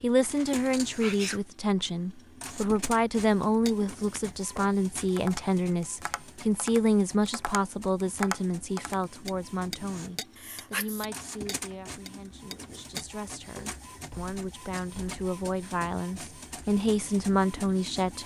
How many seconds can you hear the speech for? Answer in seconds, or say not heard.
18 s.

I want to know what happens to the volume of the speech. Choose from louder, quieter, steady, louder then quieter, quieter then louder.
quieter then louder.